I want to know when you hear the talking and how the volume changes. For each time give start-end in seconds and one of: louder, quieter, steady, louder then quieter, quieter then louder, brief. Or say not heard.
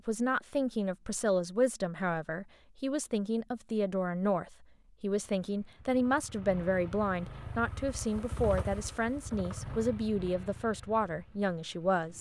0.1-12.1 steady.